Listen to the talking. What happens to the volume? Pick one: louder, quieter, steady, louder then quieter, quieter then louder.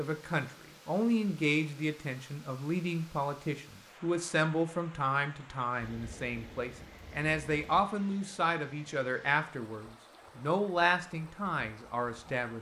steady.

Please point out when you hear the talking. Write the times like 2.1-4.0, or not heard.
0.0-12.5.